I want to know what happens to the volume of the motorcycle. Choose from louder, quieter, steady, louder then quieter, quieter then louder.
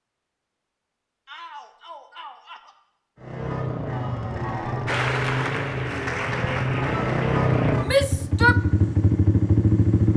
louder.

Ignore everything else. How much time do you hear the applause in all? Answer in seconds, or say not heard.
3 s.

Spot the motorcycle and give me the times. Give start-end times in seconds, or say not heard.
3.1-10.1.